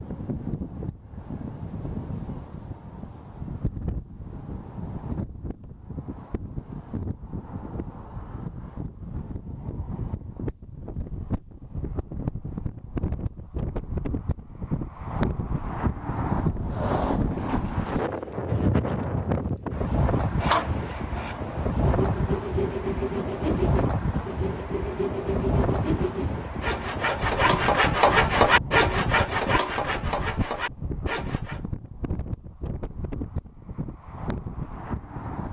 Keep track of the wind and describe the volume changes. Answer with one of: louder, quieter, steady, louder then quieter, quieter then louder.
louder then quieter.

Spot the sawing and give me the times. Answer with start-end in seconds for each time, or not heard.
20.2-31.6.